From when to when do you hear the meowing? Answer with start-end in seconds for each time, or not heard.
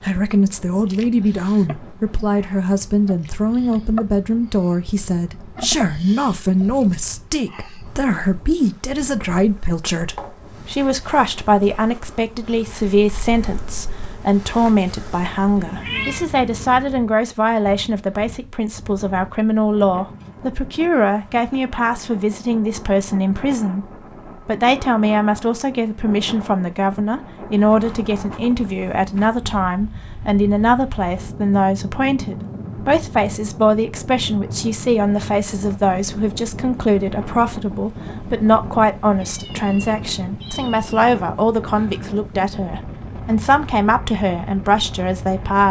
10.2-10.9, 15.7-16.2, 39.1-40.9.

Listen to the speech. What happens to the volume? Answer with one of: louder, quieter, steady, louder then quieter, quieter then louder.
steady.